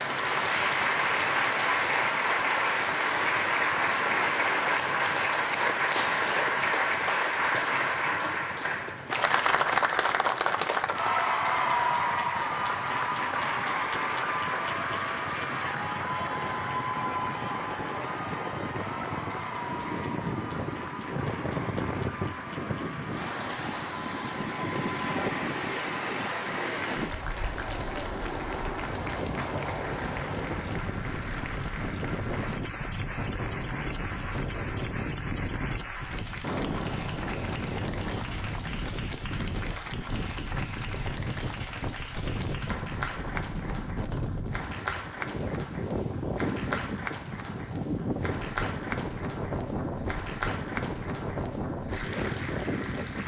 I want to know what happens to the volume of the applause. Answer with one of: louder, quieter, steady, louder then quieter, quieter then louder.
quieter.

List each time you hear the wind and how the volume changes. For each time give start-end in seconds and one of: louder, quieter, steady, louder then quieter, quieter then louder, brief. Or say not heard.
0.0-53.2 louder.